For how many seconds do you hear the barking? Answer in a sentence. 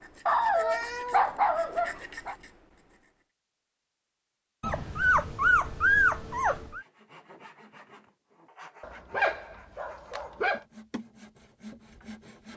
You can hear the barking for 6 seconds altogether.